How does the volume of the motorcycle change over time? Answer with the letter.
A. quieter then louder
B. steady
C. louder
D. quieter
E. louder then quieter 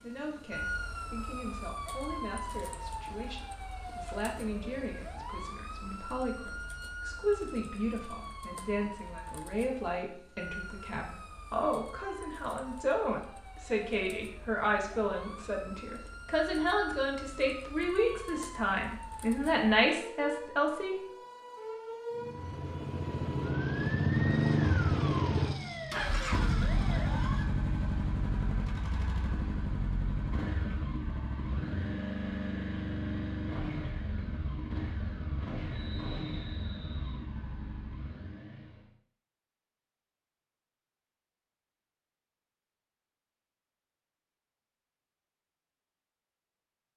D.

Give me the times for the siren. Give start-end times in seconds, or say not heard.
0.0-27.4.